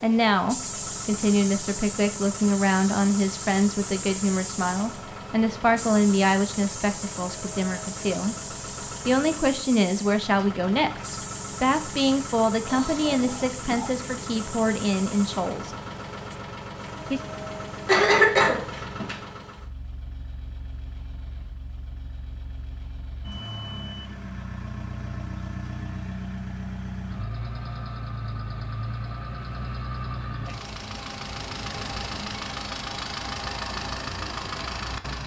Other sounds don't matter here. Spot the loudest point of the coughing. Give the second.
18 s.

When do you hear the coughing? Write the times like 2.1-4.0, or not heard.
12.7-14.0, 17.9-19.1.